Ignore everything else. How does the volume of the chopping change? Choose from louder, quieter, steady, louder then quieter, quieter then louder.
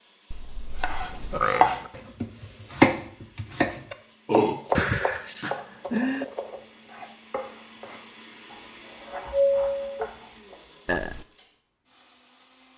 quieter.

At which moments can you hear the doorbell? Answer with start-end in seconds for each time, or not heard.
0.3-1.4, 4.8-5.4, 9.3-10.1.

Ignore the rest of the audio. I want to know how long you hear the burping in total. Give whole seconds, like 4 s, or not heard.
3 s.